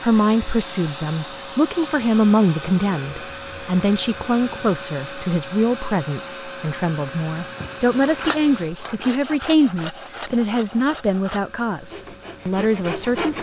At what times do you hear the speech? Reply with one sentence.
The speech can be heard from 0.0 to 13.3 s.